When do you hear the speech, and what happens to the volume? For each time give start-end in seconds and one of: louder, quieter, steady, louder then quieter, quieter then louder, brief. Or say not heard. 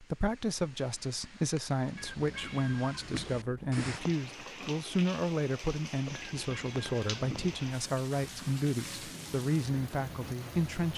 0.0-10.9 steady.